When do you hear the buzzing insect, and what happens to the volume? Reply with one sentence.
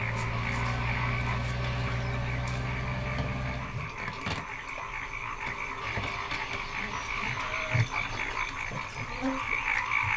The buzzing insect can be heard from 0.0 to 10.1 s, getting louder.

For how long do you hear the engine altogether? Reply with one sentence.
The engine can be heard for 4 seconds in total.